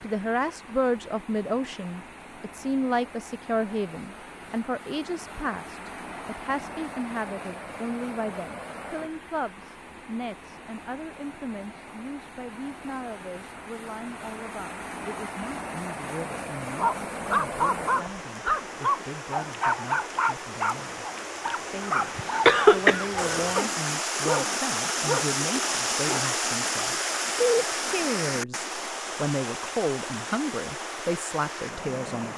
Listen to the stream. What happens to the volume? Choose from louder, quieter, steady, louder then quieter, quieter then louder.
louder.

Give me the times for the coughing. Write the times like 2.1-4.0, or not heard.
22.4-23.6.